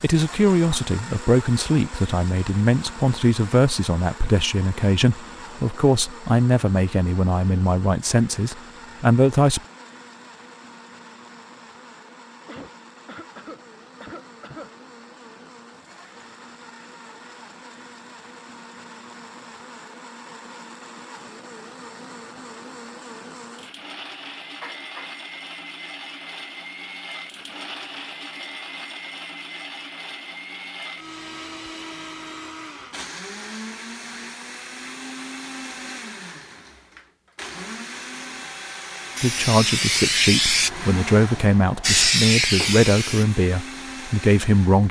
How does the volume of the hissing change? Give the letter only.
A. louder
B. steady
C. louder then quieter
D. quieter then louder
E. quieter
D.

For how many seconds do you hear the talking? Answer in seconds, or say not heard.
15 s.